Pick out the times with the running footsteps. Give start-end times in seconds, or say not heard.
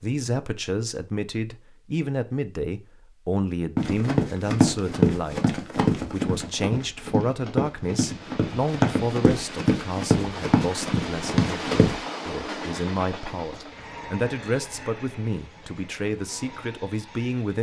3.8-12.0.